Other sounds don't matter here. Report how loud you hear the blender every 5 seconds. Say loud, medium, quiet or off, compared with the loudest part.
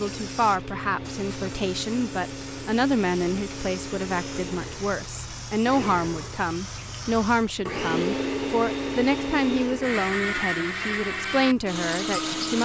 medium, loud, loud.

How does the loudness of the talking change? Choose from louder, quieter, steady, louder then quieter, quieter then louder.
steady.